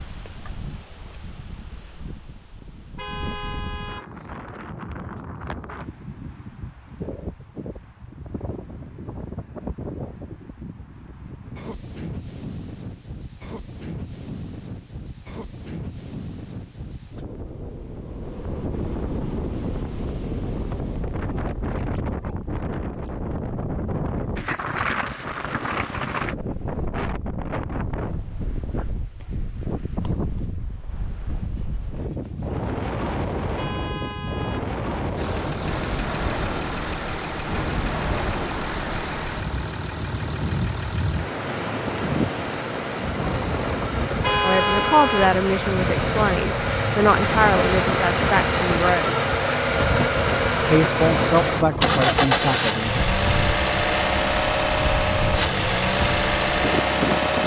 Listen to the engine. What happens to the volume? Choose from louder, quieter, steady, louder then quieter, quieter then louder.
louder.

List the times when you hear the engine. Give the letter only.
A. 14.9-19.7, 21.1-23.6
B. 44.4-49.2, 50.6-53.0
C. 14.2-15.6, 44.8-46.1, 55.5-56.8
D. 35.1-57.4
D.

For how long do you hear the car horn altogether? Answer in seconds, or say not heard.
4 s.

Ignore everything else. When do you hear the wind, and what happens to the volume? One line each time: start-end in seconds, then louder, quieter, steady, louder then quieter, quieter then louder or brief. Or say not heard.
0.0-57.4 louder.